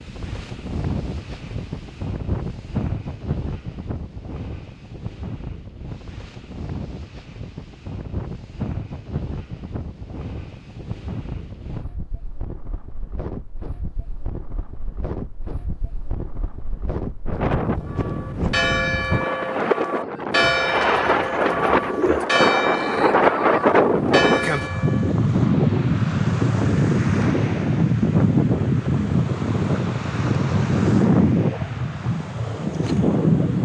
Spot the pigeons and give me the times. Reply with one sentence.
You can hear the pigeons from 20.4 to 22.2 s.